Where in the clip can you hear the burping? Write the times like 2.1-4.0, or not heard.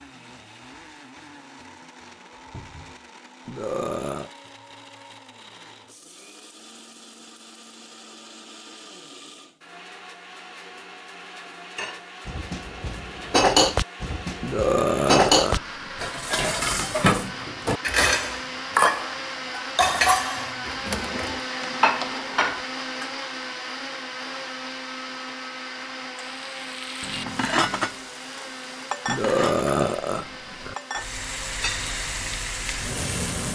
3.5-4.3, 14.4-16.1, 29.1-30.8.